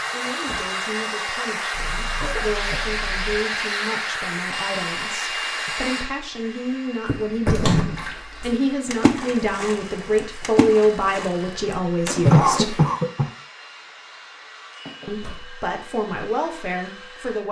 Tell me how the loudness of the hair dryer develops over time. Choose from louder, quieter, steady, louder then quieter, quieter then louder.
quieter.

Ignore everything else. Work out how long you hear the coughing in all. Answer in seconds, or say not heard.
4 s.